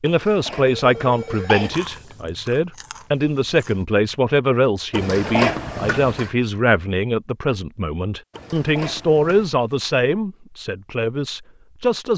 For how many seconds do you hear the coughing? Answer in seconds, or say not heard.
4 s.